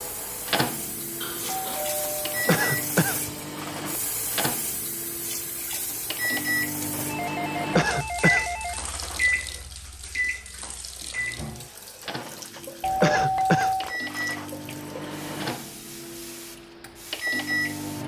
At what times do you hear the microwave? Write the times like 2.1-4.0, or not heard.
0.0-18.0.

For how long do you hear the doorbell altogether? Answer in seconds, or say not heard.
5 s.